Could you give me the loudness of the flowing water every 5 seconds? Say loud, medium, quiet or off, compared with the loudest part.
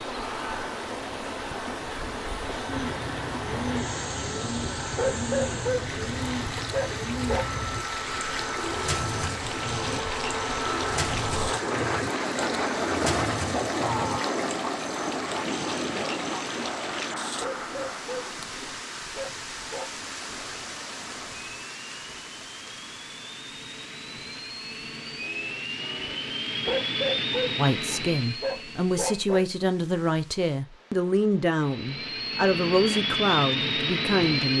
loud, loud, loud, loud, medium, quiet, quiet.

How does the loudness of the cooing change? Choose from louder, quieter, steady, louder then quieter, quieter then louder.
steady.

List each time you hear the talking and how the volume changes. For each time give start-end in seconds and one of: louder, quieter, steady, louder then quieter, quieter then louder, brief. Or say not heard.
27.6-34.5 steady.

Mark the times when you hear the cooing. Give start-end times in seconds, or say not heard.
2.6-14.4.